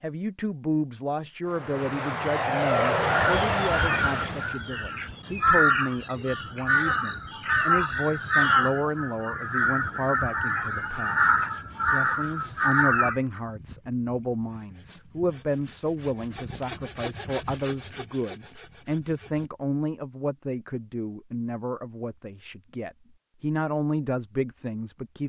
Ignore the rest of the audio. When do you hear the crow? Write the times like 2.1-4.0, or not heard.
2.8-13.4.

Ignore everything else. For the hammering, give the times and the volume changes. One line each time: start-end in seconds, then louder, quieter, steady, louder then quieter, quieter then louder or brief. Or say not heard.
not heard.